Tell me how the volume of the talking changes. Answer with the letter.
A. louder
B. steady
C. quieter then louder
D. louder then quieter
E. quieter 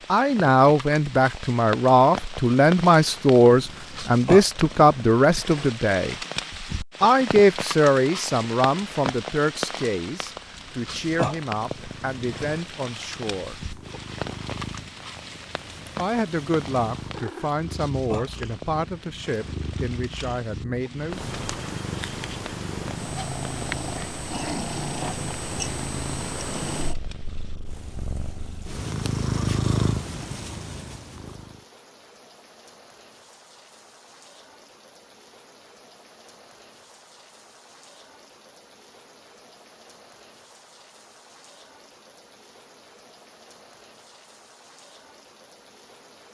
E.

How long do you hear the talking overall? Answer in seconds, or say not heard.
18 s.